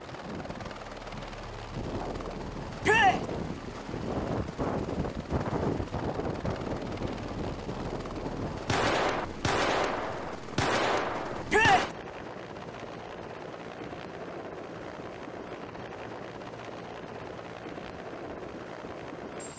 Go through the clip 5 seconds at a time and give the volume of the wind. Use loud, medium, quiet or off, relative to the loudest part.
loud, loud, quiet, quiet.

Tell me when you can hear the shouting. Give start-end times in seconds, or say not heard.
2.8-3.2, 11.4-11.8.